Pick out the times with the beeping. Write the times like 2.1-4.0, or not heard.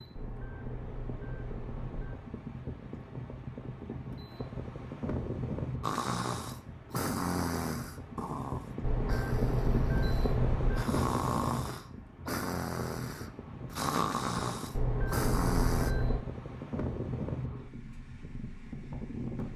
0.1-2.1, 8.8-10.8, 14.7-16.2.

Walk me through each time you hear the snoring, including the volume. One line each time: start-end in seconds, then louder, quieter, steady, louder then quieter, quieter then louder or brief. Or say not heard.
5.8-15.9 quieter then louder.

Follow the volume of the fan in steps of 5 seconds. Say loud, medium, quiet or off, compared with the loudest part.
medium, loud, loud, loud.